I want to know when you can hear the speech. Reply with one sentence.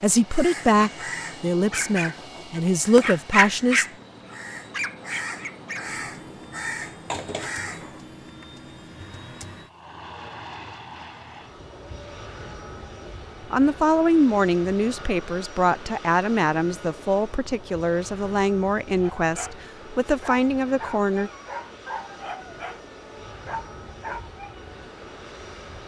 The speech can be heard from 0.0 to 3.9 s and from 13.5 to 21.3 s.